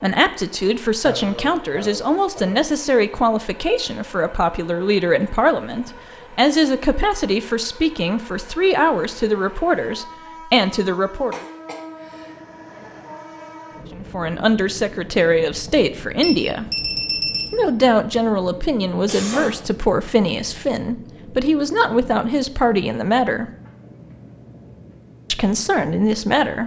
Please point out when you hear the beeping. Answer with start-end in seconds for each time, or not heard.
16.2-17.5.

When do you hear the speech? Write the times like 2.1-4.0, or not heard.
0.0-11.4, 13.9-16.6, 17.5-23.5, 25.3-26.6.